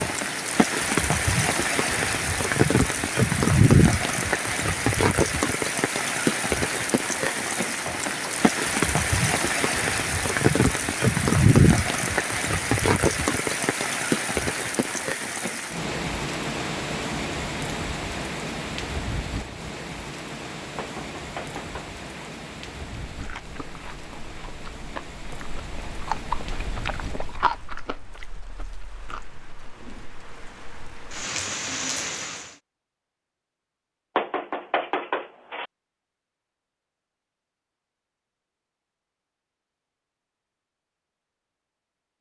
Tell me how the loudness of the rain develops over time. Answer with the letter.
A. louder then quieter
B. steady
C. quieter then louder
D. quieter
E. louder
D.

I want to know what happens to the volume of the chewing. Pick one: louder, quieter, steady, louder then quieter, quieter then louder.
louder then quieter.